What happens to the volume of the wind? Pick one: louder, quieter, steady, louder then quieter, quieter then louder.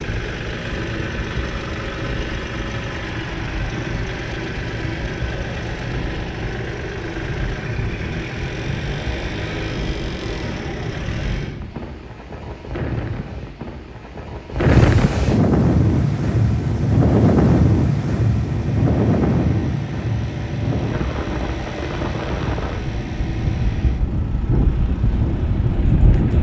louder then quieter.